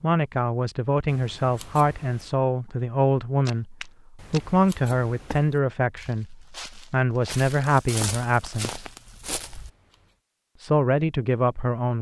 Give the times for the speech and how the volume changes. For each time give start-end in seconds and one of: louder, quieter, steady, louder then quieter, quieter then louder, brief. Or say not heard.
0.0-8.8 steady
10.6-11.9 brief.